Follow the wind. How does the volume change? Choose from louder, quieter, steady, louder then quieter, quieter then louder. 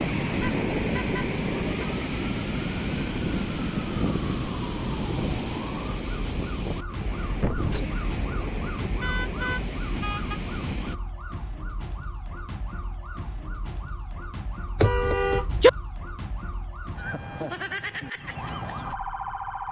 quieter.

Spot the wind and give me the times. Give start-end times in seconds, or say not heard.
0.0-10.9.